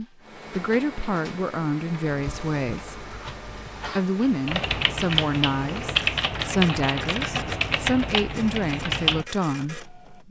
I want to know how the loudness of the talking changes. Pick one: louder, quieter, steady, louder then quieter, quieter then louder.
steady.